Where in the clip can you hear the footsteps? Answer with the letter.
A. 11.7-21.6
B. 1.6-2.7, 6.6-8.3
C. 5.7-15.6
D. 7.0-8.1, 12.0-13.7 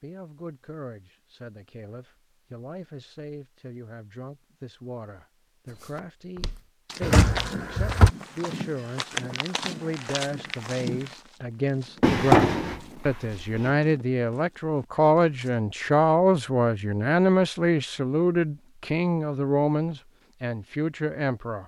C.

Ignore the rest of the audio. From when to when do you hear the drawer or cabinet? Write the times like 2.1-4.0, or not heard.
7.0-8.1, 12.0-13.7.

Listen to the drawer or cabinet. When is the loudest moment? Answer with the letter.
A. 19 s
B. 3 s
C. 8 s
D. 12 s
D.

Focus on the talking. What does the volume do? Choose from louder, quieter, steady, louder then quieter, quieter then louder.
louder.